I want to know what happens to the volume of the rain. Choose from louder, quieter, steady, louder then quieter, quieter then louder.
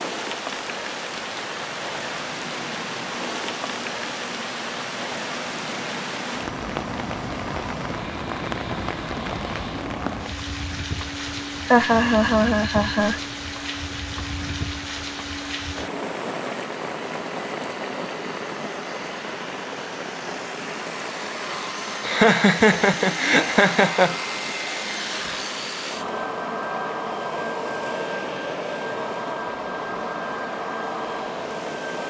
quieter.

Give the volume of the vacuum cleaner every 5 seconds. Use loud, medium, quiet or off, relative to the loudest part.
medium, medium, medium, medium, loud, loud, loud.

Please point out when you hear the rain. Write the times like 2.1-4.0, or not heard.
0.0-32.0.